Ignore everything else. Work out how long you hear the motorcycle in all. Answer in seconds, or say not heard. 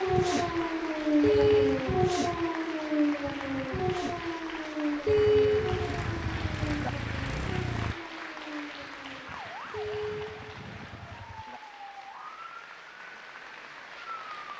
2 s.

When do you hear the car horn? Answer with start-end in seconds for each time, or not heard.
1.2-1.9, 5.0-6.9, 9.7-11.6.